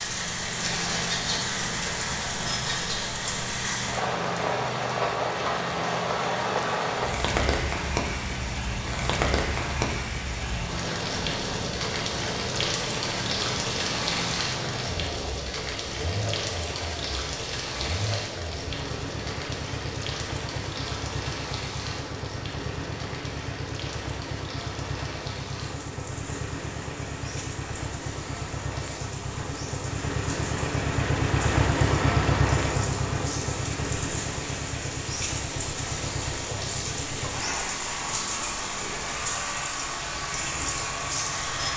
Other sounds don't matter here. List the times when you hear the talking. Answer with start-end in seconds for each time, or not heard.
not heard.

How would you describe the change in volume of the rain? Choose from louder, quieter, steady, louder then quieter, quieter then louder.
quieter then louder.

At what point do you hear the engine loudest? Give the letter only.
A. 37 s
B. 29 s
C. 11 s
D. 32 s
D.